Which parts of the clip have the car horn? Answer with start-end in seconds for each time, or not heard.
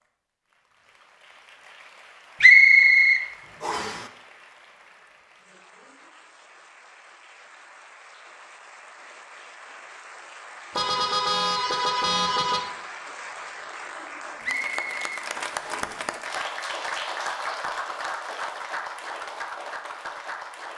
10.8-12.6.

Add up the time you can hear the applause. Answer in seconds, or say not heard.
21 s.